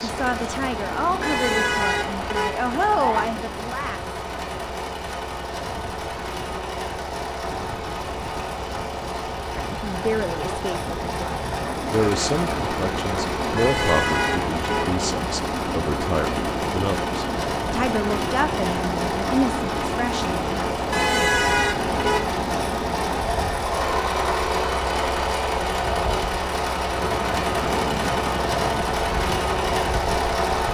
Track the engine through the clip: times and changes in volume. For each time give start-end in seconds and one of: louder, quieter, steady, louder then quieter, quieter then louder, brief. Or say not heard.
0.0-30.6 louder.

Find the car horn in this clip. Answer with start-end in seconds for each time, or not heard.
1.2-3.2, 13.6-15.0, 20.9-22.4.